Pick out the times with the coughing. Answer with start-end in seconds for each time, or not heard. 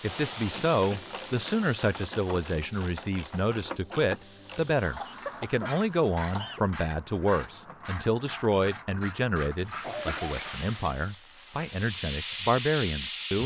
0.5-1.2, 4.8-6.6, 9.8-10.4.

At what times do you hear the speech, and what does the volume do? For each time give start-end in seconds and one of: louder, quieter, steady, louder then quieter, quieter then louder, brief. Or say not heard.
0.0-13.4 steady.